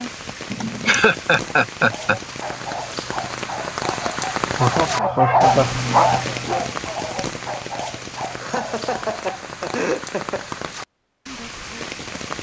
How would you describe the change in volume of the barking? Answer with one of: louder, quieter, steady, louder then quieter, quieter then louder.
louder then quieter.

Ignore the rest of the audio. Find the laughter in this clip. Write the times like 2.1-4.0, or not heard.
0.5-2.2, 4.5-5.8, 8.4-10.4.